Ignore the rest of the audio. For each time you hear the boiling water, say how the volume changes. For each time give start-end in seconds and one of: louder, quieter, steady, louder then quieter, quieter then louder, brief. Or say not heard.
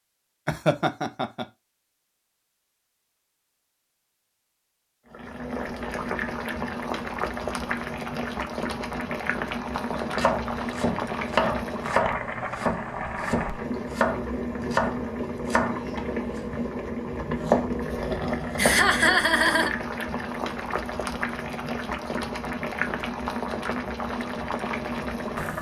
5.1-25.5 steady.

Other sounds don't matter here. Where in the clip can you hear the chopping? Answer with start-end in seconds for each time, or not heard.
10.0-19.1.